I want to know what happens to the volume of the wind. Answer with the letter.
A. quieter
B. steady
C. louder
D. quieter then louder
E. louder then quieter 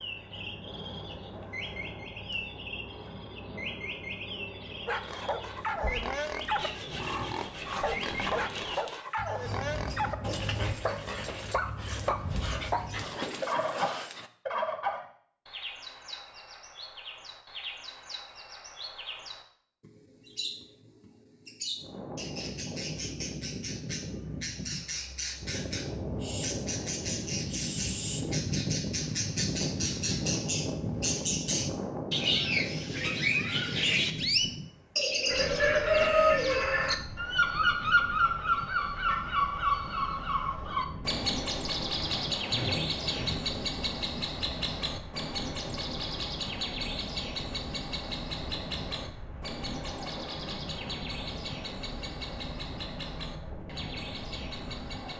A.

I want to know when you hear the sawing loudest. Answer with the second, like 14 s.
43 s.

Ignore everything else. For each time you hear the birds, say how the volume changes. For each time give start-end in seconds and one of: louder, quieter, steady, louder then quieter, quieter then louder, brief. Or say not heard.
0.0-55.1 louder then quieter.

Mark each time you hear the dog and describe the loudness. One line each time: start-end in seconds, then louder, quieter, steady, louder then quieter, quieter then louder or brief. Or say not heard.
4.8-14.3 steady.